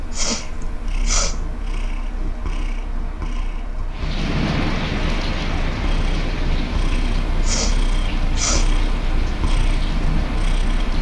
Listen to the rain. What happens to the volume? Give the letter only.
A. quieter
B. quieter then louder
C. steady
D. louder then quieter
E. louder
A.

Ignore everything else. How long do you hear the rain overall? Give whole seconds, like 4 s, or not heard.
7 s.